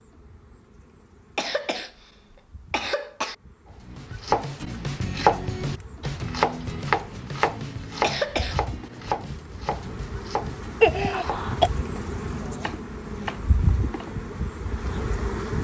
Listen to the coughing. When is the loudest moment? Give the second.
11 s.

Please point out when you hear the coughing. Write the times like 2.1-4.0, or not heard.
1.4-3.4, 8.0-8.6, 10.8-11.7.